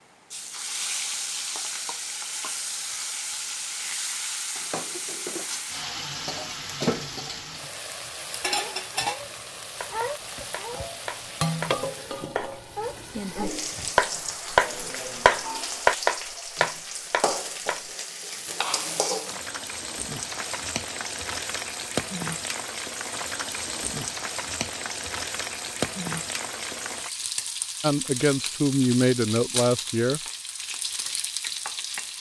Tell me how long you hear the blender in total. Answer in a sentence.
The blender can't be heard in this clip.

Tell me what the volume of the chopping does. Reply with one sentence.
The volume of the chopping goes up, then down.